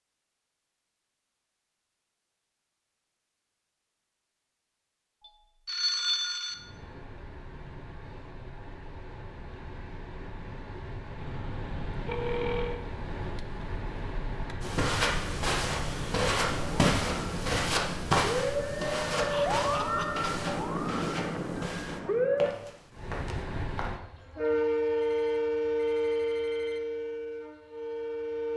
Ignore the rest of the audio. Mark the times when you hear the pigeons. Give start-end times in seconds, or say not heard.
not heard.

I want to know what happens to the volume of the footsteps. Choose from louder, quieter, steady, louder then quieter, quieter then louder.
quieter.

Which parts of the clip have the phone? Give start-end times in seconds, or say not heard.
5.2-6.5, 11.2-12.8, 24.9-26.8.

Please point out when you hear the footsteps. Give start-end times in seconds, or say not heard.
14.6-23.9.